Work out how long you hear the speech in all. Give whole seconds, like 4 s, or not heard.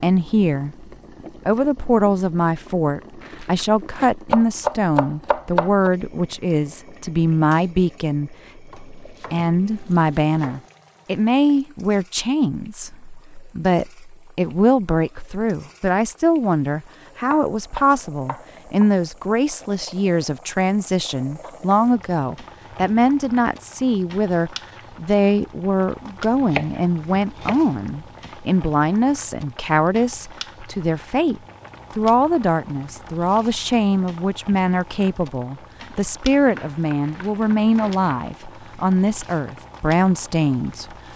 41 s.